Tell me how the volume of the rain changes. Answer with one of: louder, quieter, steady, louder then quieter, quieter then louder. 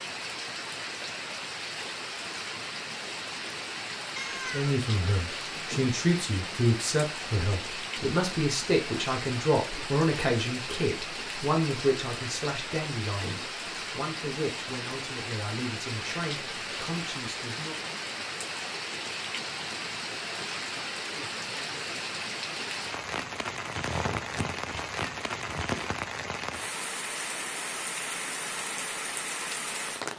steady.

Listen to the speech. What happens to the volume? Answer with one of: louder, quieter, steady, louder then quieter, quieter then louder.
quieter.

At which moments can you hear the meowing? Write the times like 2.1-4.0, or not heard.
4.2-4.8, 23.8-25.8.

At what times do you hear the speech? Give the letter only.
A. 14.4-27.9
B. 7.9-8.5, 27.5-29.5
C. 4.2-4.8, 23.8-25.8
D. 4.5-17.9
D.